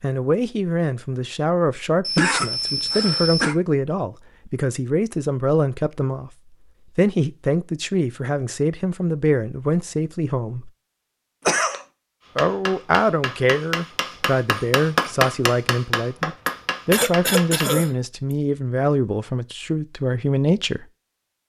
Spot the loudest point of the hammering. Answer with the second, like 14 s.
15 s.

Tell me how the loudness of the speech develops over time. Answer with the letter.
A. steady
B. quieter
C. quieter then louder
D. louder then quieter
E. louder
A.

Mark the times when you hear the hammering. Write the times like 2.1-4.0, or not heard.
12.2-17.7.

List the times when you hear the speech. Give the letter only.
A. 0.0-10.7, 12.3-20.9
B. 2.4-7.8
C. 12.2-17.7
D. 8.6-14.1
A.